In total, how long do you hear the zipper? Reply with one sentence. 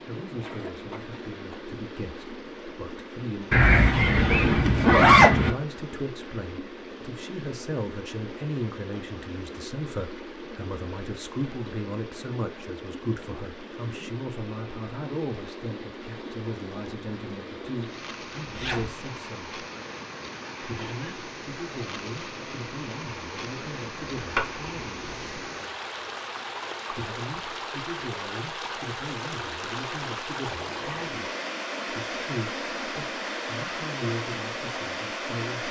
You can hear the zipper for 4 seconds altogether.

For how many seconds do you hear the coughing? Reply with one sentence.
You can hear the coughing for 2 seconds altogether.